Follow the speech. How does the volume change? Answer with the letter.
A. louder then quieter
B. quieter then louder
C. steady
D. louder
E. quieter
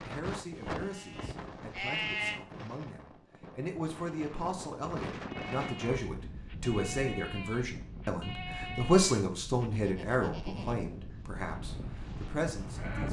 A.